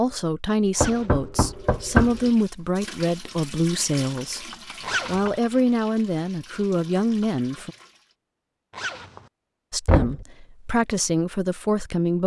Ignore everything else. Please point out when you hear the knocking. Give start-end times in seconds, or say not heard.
0.8-2.3, 4.2-5.3, 9.8-10.2.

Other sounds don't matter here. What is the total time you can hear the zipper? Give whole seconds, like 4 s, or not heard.
2 s.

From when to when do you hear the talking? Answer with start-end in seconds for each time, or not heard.
0.0-7.7, 9.7-12.2.